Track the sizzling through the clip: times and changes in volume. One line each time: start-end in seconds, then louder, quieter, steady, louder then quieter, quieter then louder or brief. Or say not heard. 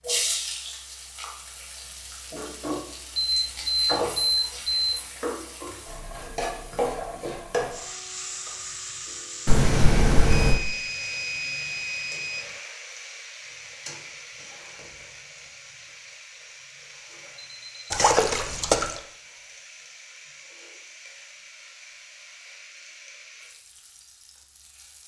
0.0-25.0 quieter.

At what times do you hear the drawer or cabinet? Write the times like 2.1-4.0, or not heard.
not heard.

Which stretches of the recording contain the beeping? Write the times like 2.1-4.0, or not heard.
3.1-5.0, 10.3-12.6, 17.4-17.9.